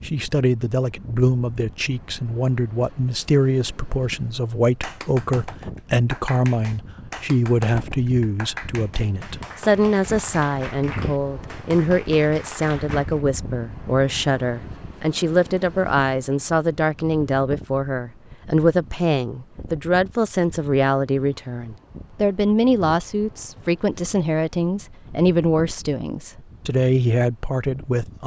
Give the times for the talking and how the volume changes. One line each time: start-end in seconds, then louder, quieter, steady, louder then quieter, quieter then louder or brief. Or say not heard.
0.0-28.2 steady.